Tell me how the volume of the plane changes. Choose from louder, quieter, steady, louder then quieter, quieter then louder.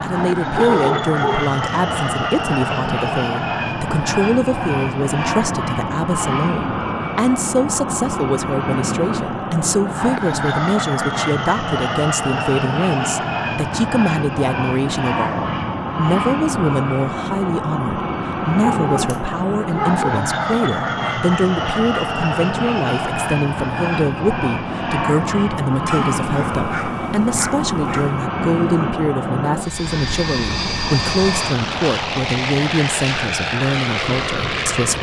steady.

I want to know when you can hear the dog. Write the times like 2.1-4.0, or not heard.
0.6-1.5, 18.6-20.2, 25.9-28.2.